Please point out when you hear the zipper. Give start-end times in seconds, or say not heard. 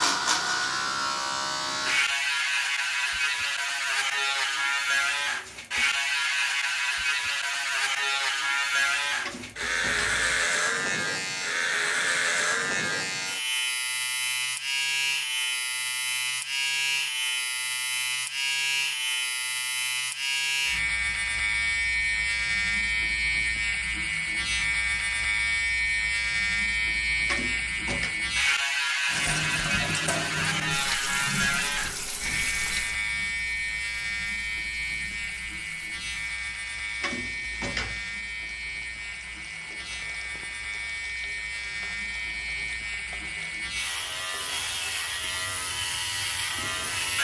not heard.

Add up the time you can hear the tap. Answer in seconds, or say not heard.
16 s.